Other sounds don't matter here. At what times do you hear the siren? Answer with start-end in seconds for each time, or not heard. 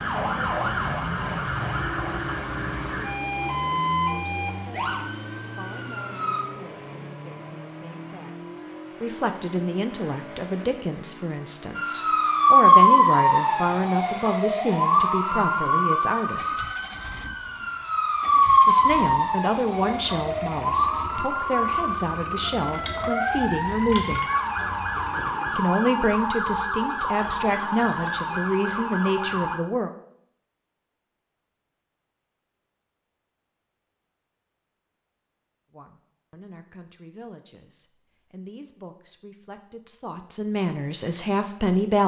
0.0-6.5, 11.8-29.6.